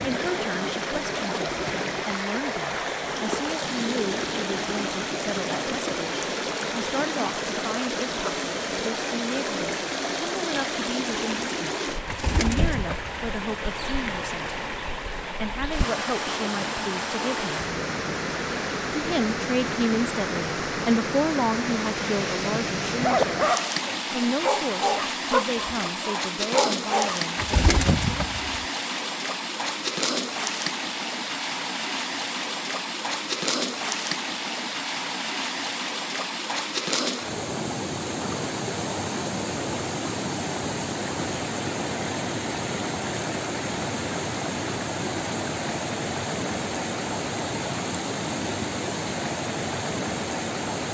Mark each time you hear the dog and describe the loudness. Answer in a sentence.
You can hear the dog from 22.4 to 27.2 s, getting quieter then louder.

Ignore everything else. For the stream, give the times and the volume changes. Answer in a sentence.
You can hear the stream from 0.0 to 50.8 s, at a steady volume.